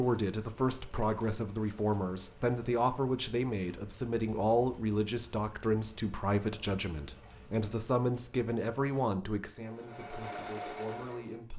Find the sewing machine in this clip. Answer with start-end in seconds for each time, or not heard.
9.6-11.5.